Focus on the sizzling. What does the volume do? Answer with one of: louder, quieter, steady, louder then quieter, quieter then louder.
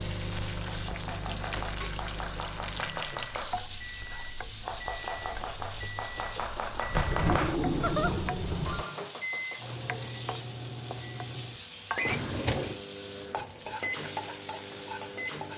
steady.